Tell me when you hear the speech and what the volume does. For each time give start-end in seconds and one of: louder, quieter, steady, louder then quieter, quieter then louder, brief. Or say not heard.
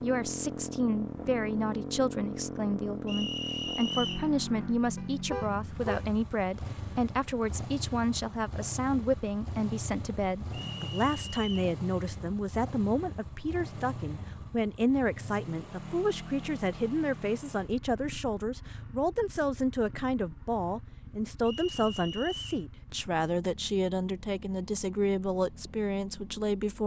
0.0-26.8 steady.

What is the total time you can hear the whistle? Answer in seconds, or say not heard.
4 s.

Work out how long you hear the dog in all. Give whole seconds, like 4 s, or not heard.
not heard.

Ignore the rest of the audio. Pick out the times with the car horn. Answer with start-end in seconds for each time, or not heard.
5.0-6.1.